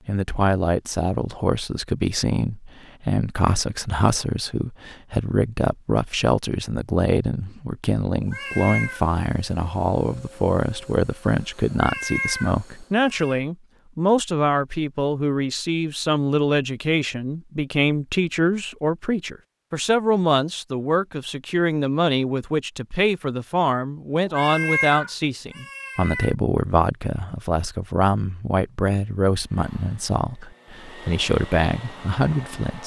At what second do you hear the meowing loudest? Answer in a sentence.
The loudest moment of the meowing is at 25 seconds.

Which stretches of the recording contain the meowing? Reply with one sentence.
The meowing can be heard from 8.2 to 9.1 s, from 11.7 to 13.4 s and from 24.2 to 26.4 s.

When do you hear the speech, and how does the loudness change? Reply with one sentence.
The speech can be heard from 0.1 to 32.8 s, at a steady volume.